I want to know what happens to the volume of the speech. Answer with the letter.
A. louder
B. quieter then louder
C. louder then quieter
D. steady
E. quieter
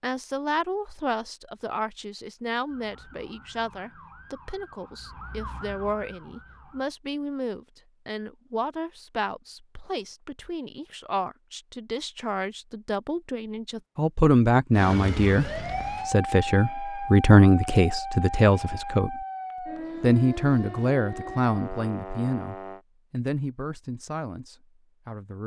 C.